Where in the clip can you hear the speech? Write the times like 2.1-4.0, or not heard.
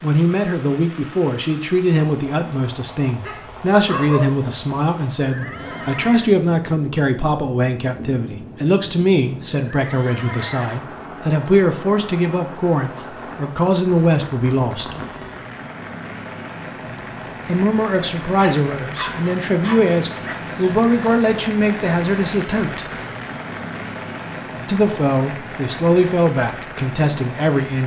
0.0-14.9, 17.4-22.9, 24.6-27.8.